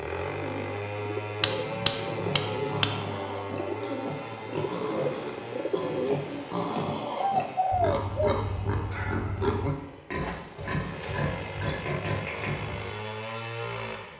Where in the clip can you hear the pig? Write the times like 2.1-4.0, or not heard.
1.9-12.9.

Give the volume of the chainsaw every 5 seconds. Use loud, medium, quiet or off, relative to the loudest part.
loud, medium, loud.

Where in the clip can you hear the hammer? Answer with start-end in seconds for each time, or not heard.
1.4-3.0.